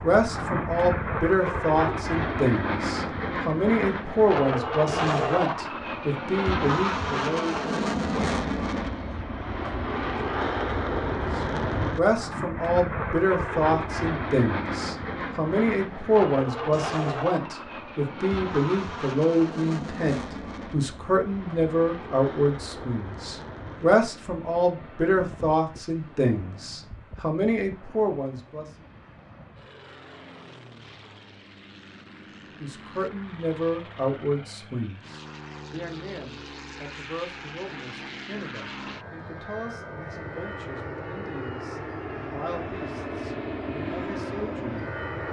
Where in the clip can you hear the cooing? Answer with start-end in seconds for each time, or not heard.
not heard.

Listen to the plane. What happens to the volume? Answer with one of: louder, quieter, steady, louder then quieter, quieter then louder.
quieter then louder.